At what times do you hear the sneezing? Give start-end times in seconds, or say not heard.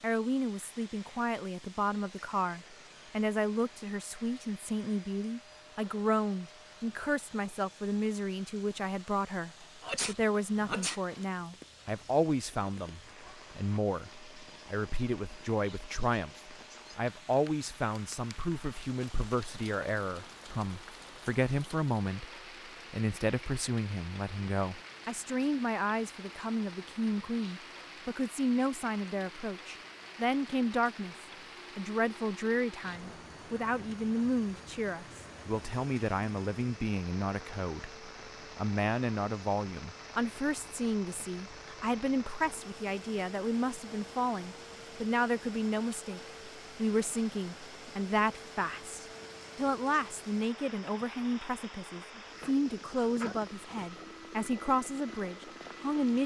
9.8-11.0, 52.4-53.4.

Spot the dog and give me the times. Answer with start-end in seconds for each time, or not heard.
not heard.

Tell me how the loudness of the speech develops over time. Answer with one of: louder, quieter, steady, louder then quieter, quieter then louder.
steady.